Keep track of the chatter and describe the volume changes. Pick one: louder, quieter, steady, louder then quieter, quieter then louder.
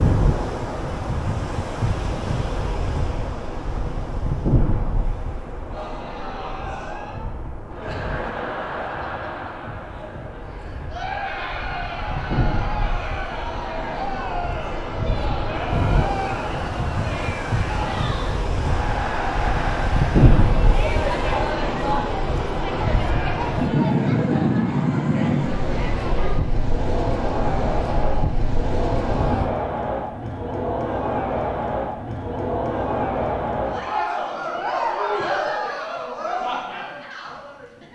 louder.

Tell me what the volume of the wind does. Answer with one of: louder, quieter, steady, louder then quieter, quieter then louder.
quieter then louder.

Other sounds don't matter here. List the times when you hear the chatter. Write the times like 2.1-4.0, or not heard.
5.7-37.9.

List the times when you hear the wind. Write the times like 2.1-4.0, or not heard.
0.0-29.5.